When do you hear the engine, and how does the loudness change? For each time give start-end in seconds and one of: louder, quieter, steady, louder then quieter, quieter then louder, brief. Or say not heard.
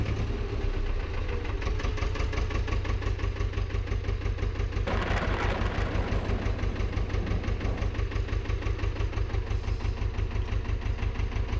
0.0-11.5 steady.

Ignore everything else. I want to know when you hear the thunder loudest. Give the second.
5 s.